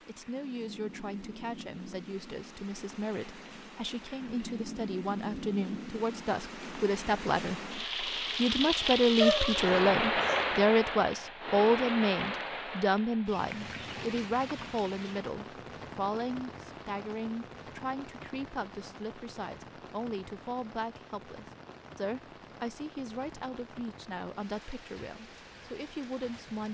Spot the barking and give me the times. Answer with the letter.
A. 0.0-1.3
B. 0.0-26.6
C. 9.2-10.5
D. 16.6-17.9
C.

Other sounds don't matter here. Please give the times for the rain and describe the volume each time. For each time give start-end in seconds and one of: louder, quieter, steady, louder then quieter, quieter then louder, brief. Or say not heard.
0.0-26.6 louder then quieter.